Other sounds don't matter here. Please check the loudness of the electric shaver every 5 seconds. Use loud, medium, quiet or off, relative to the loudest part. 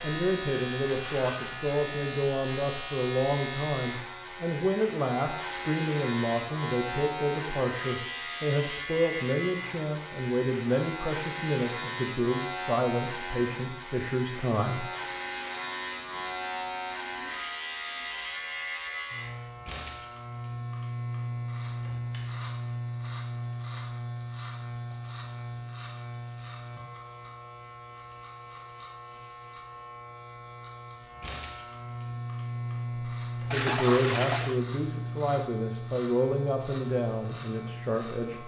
loud, loud, loud, loud, loud, medium, loud, loud.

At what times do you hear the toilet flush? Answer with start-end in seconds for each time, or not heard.
33.5-34.6.